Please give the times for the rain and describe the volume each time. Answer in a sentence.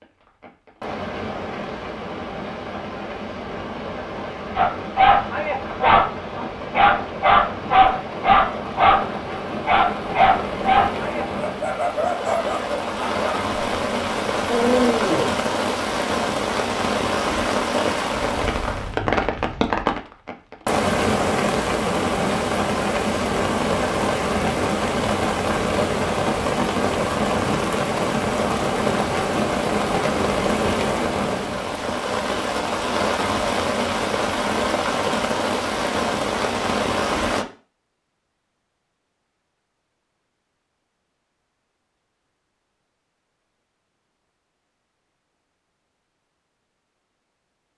You can hear the rain from 0.0 to 37.5 s, getting louder.